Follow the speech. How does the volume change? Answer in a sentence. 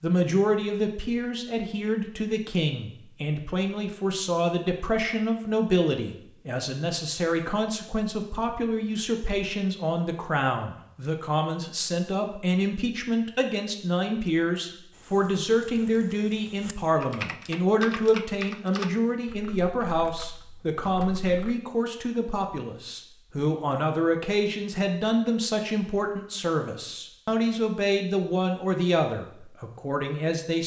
The volume of the speech stays about the same.